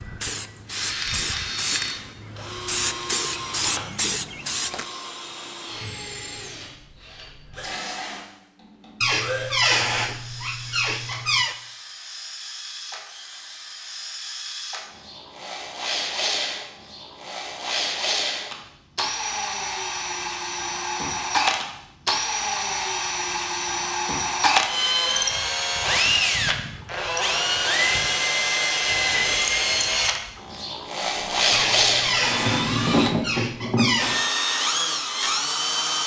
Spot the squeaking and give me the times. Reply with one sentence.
The squeaking can be heard from 9.0 to 11.6 s and from 31.5 to 34.2 s.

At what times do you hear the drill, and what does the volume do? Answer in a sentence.
The drill can be heard from 0.0 to 36.0 s, getting louder.